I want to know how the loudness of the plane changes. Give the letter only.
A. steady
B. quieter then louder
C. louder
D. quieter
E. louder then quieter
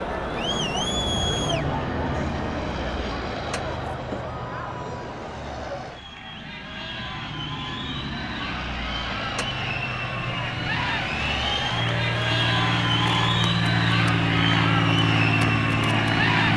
B.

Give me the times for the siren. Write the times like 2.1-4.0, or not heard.
not heard.